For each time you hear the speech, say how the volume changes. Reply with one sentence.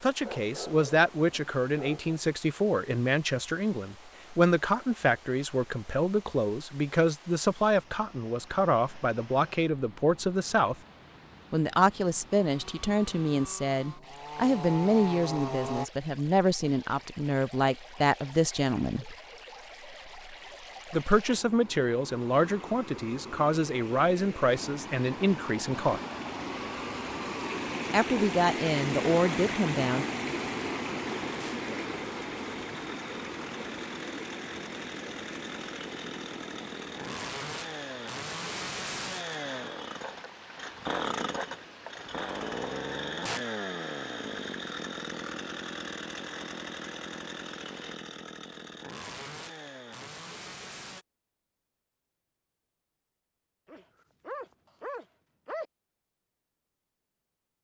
You can hear the speech from 0.0 to 10.8 s, at a steady volume; from 11.5 to 19.1 s, at a steady volume; from 20.9 to 26.0 s, at a steady volume; and briefly from 27.9 to 30.1 s.